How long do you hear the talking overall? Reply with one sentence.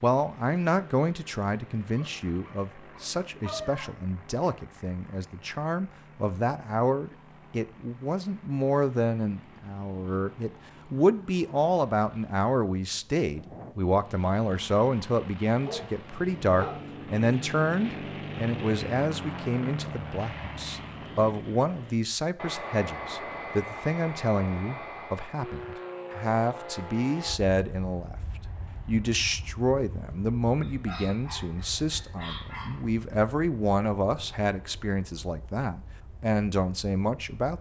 The talking can be heard for 37 seconds in total.